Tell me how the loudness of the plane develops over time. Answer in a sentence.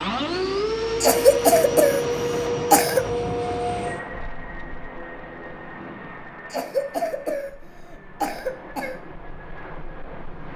The loudness of the plane goes down.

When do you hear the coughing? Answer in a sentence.
The coughing can be heard from 1.0 to 3.0 s and from 6.5 to 9.0 s.